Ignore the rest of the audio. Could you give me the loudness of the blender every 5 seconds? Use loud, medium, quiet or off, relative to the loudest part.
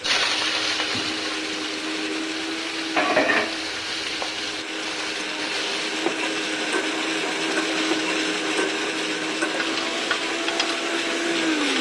medium, loud, loud.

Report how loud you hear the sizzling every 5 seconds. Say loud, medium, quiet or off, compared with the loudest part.
loud, medium, medium.